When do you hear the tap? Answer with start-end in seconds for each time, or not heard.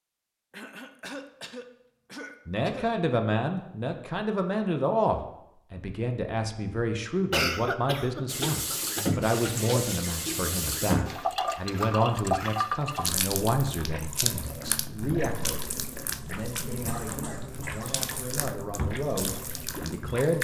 8.2-20.3.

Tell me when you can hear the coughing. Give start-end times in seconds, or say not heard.
0.5-2.9, 7.3-9.1, 15.8-17.9.